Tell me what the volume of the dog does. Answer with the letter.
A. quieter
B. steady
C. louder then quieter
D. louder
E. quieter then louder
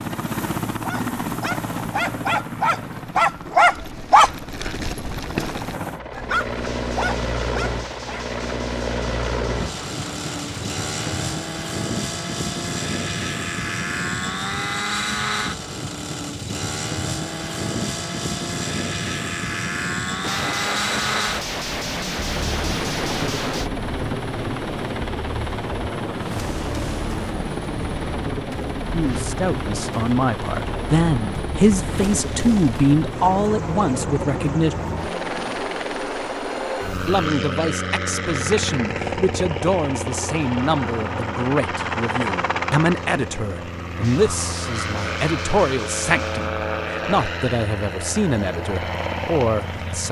C.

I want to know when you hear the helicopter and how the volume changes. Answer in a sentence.
The helicopter can be heard from 0.0 to 50.0 s, at a steady volume.